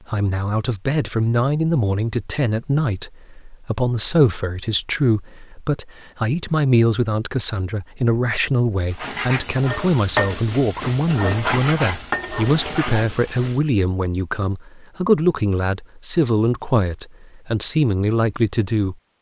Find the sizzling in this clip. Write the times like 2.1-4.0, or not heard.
8.9-13.6.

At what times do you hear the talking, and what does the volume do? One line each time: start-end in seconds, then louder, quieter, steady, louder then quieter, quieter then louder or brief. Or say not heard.
0.1-18.9 steady.